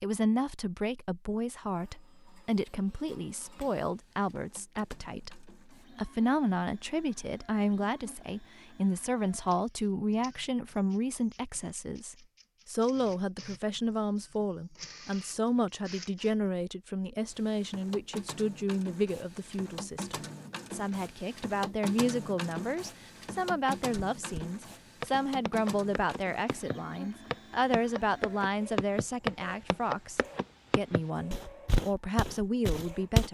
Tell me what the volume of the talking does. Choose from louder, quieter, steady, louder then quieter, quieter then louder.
steady.